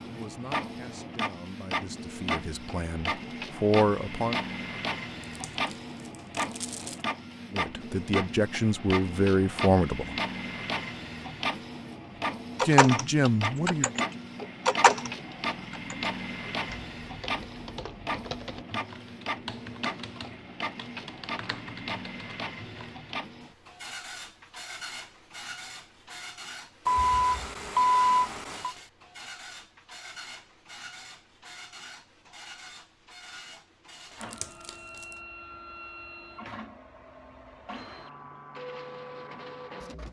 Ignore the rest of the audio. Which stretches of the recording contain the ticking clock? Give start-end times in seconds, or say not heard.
not heard.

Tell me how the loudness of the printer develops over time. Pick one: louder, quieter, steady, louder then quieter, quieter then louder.
quieter.